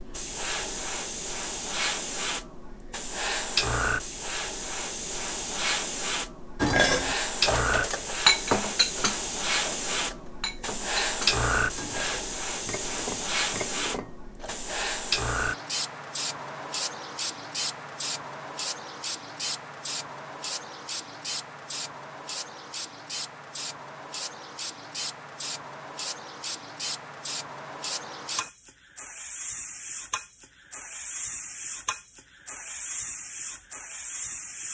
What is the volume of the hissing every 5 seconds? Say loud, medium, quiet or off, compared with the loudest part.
loud, loud, loud, loud, medium, medium, medium.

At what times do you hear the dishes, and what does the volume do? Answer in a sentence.
The dishes can be heard from 6.6 to 14.8 s, getting quieter.